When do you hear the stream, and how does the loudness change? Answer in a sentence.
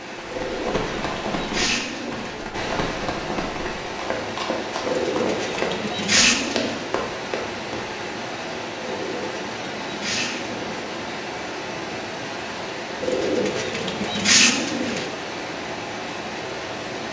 The stream can be heard from 0.0 to 17.0 s, at a steady volume.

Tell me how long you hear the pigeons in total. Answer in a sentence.
The pigeons can be heard for 8 seconds in total.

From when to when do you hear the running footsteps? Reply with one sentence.
The running footsteps can be heard from 0.2 to 7.8 s.